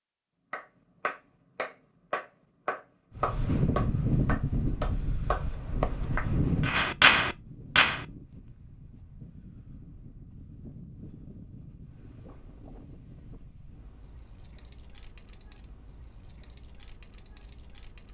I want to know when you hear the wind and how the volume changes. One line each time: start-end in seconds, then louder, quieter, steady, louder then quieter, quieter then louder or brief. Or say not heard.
3.1-18.0 quieter.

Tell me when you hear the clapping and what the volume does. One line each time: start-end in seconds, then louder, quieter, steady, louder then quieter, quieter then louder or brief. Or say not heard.
0.5-8.0 louder.